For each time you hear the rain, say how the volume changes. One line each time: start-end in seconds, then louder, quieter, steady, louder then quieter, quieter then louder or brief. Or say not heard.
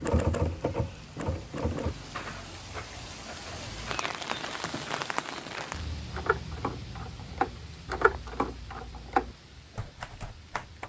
0.0-10.8 louder then quieter.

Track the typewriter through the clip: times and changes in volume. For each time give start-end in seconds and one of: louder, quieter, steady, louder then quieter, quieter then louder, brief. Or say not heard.
0.0-10.8 quieter then louder.